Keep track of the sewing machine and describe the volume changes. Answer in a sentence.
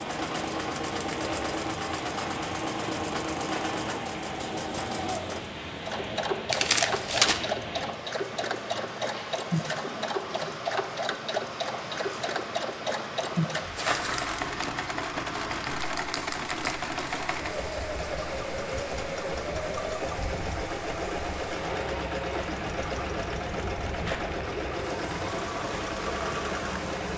The volume of the sewing machine stays about the same.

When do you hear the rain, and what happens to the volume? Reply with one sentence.
The rain can be heard from 0.0 to 27.1 s, at a steady volume.